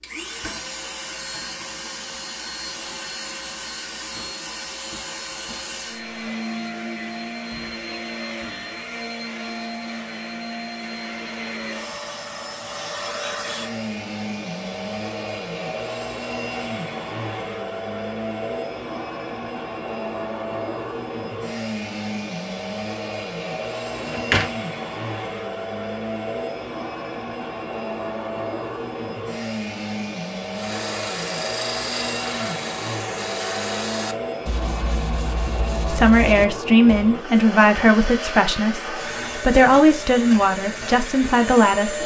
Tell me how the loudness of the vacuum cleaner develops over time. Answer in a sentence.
The volume of the vacuum cleaner stays about the same.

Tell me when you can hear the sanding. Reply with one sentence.
The sanding can be heard from 30.5 to 37.1 s.